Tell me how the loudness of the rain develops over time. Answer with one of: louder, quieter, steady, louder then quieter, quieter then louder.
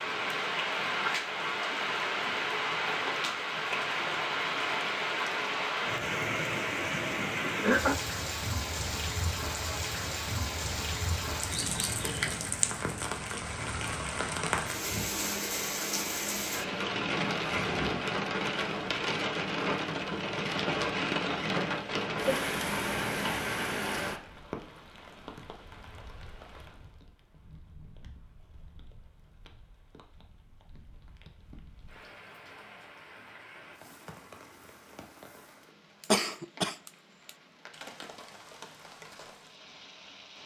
quieter.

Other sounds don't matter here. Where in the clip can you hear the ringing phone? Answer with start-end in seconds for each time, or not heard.
not heard.